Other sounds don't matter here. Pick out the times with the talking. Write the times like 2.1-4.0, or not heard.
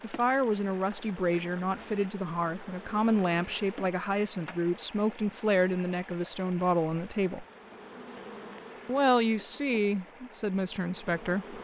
0.0-7.5, 8.8-11.5.